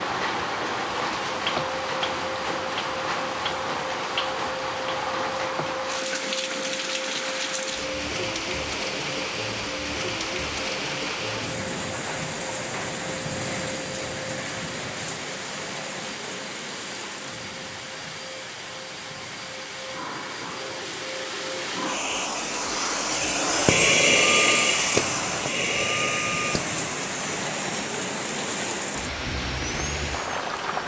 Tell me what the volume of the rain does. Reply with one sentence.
The loudness of the rain goes down, then up.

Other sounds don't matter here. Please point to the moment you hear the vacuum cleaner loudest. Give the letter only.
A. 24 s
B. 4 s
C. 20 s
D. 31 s
A.